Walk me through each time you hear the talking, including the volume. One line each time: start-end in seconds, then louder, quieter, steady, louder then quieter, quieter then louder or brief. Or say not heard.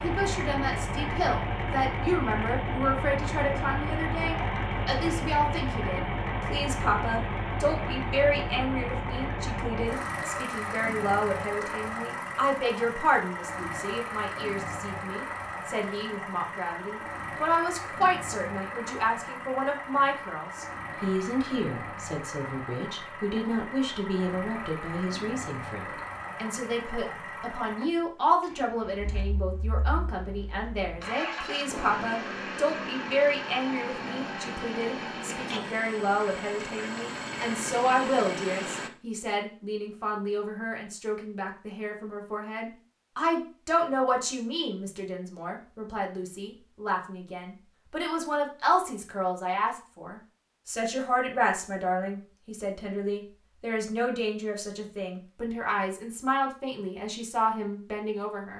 0.0-58.5 steady.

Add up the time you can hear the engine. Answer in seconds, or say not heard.
39 s.